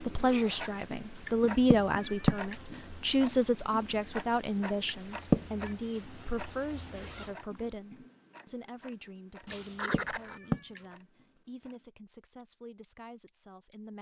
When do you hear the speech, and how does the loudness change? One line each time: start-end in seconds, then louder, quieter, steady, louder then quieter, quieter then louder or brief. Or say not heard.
0.0-13.9 quieter.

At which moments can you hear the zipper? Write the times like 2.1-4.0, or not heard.
0.1-0.8, 6.9-7.8, 9.4-10.4.